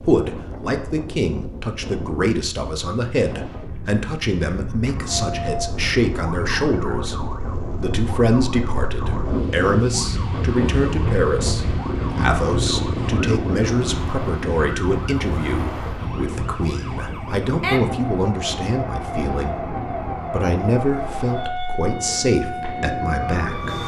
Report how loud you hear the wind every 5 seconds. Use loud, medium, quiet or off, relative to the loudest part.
medium, loud, loud, medium, medium.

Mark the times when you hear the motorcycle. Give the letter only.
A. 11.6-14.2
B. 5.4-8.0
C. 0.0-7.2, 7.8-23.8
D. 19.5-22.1
A.